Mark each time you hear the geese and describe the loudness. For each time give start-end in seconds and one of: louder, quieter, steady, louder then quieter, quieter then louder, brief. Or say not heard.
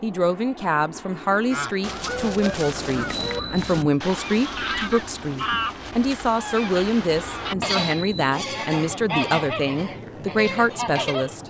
1.5-11.4 steady.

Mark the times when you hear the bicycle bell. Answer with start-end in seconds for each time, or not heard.
2.9-3.6, 7.5-8.3.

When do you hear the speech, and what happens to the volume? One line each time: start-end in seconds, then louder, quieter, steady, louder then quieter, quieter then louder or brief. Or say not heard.
0.0-11.4 steady.